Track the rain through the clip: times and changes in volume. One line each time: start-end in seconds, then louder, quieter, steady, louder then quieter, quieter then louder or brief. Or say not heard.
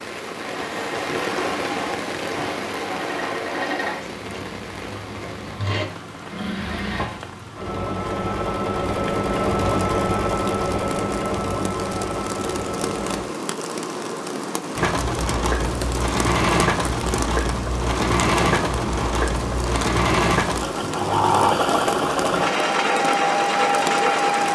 0.0-24.5 quieter then louder.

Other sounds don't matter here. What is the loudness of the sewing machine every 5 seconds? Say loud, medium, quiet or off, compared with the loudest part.
medium, medium, medium, loud, loud.